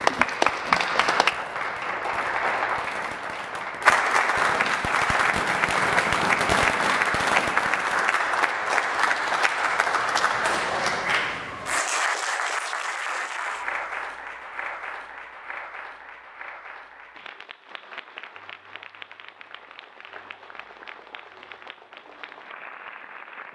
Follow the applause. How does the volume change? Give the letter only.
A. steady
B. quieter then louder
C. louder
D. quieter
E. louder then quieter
D.